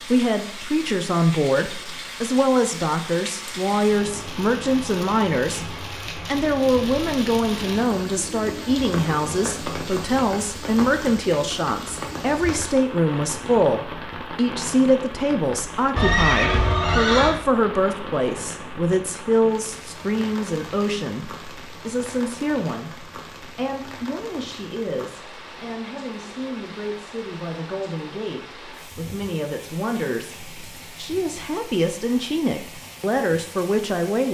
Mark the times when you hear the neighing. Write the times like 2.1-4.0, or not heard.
15.9-17.4.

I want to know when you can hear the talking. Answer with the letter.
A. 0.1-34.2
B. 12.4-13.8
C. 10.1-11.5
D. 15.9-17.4
A.